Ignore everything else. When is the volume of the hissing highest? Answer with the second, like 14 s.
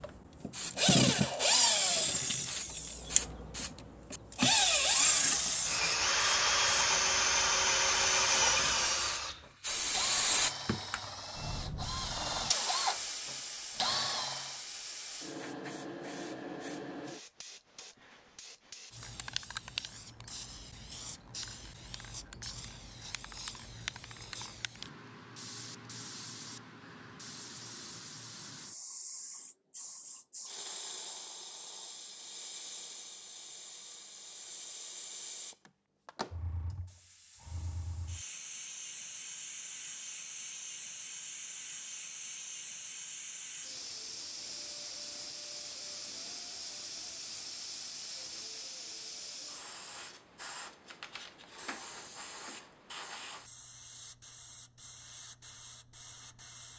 10 s.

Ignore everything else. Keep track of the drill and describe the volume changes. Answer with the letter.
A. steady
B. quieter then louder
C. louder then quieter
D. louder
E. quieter
E.